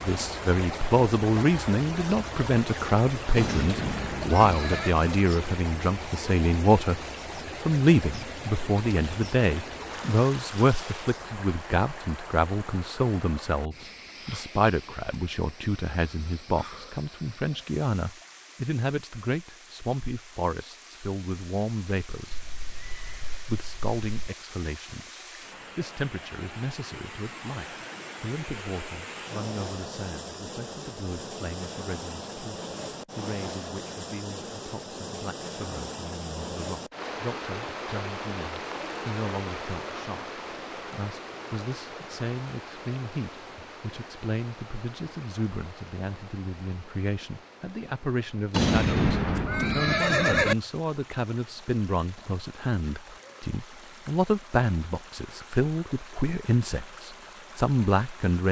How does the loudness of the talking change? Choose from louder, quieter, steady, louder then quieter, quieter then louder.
quieter then louder.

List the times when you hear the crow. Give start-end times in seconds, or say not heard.
not heard.